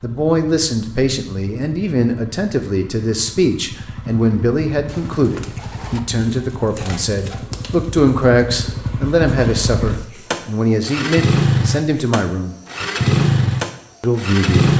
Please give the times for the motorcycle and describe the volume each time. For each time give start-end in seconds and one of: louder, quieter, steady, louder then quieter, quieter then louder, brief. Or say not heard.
0.0-14.7 louder.